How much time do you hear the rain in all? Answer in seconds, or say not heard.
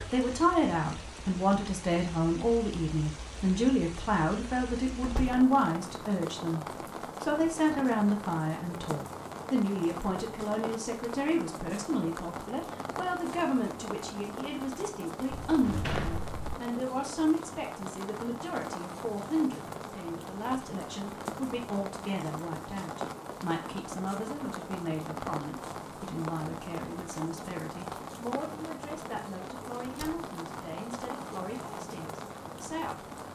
33 s.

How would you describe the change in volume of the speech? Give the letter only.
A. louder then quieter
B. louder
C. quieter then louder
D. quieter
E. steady
D.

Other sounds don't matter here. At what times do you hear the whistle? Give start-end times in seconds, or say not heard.
not heard.